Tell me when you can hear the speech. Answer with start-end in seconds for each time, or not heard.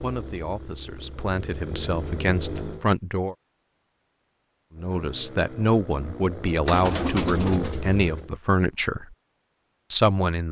0.0-3.4, 4.8-9.2, 9.9-10.4.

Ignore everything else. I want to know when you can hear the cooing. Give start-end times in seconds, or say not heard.
6.7-8.0.